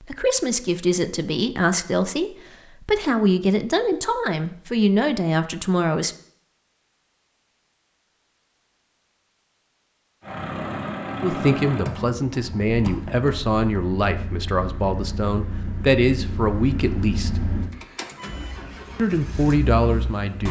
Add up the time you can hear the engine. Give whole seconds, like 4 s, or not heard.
10 s.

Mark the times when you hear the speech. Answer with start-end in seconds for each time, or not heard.
0.0-6.2, 11.2-17.4, 18.9-20.4.